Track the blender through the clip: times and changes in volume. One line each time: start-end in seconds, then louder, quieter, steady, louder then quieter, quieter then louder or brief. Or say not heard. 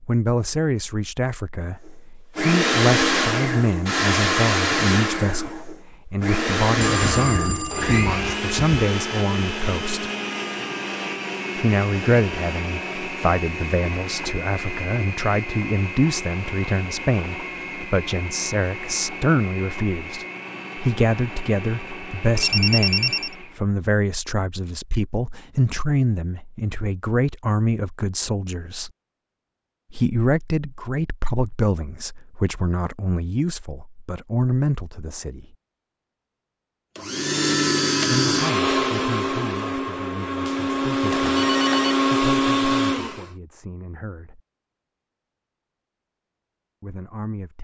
2.4-23.6 quieter
37.0-43.3 quieter then louder.